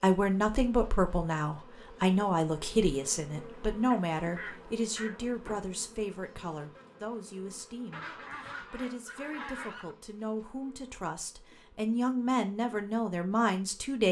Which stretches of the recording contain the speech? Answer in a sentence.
The speech can be heard from 0.0 to 14.0 s.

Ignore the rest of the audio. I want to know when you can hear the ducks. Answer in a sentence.
The ducks can be heard from 3.9 to 5.2 s and from 7.9 to 9.9 s.